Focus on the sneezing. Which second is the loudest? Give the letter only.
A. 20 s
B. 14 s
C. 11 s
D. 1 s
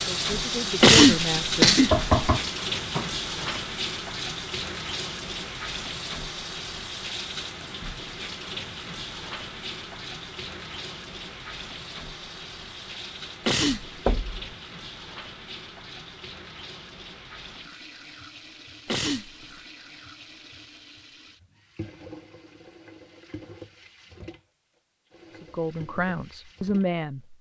D.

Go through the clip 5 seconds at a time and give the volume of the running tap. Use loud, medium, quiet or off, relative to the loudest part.
loud, medium, medium, quiet, quiet, quiet.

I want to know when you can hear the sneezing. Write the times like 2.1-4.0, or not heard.
0.8-2.0, 13.4-14.1, 18.9-19.6.